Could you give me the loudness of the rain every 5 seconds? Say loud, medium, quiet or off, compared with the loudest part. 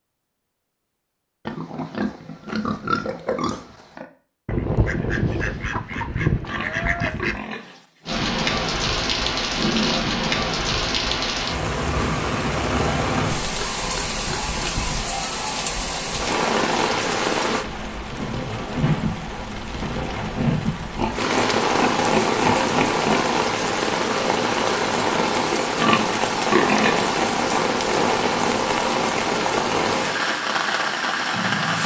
off, loud, loud, loud, loud, loud, loud.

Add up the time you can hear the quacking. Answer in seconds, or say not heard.
3 s.